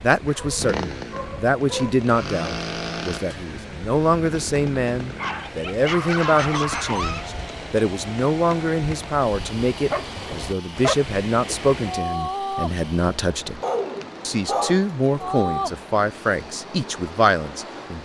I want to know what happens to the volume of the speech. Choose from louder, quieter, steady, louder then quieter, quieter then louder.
steady.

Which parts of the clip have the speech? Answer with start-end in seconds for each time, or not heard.
0.0-13.6, 14.2-18.0.